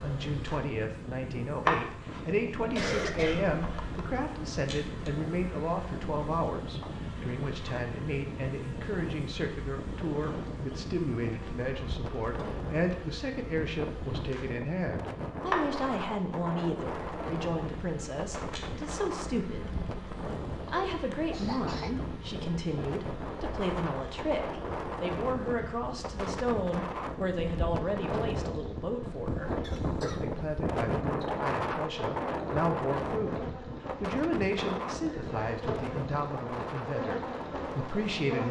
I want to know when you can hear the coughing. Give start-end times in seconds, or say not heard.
2.7-4.0, 20.9-21.9, 29.6-30.2.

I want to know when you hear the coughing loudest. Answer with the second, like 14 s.
3 s.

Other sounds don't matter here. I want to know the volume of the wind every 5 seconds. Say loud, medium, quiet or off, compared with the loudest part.
medium, medium, medium, medium, medium, loud, loud, medium.